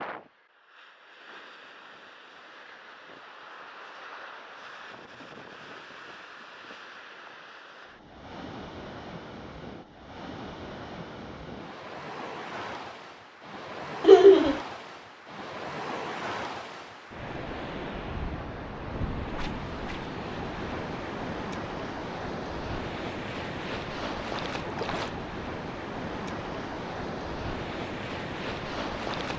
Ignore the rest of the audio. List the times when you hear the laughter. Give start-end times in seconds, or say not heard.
14.0-14.6.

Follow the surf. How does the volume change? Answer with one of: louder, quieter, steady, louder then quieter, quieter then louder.
louder.